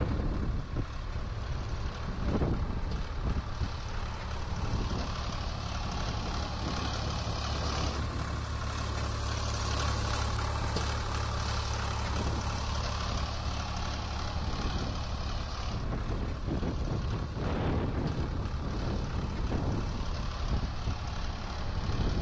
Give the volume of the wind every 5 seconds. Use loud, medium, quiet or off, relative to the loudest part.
loud, medium, medium, loud, loud.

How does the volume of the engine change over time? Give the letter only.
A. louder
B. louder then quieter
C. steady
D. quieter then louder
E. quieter
B.